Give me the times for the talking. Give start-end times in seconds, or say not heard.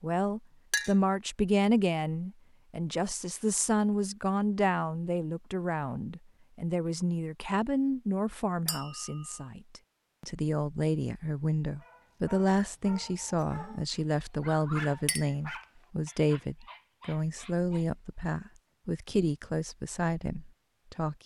0.0-21.2.